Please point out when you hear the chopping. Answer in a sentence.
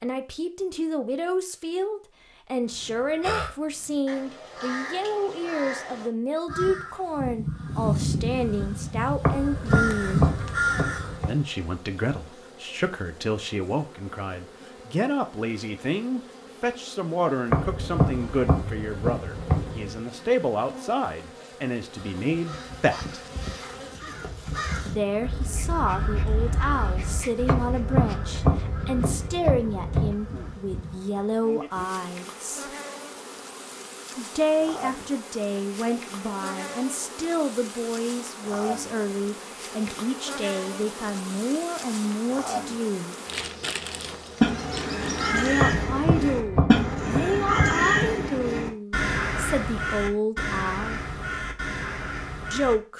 The chopping can be heard from 9.2 to 11.3 s, from 17.5 to 20.0 s, from 27.4 to 30.1 s and from 45.5 to 47.9 s.